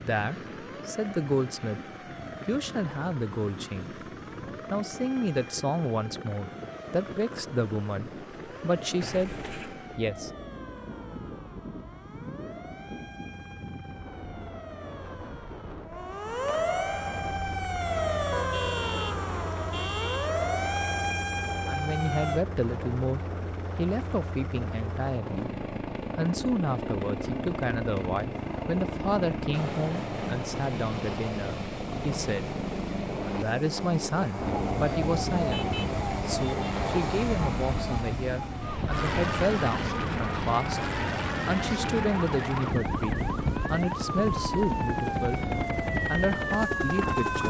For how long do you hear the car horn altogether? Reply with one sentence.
The car horn can be heard for 3 seconds in total.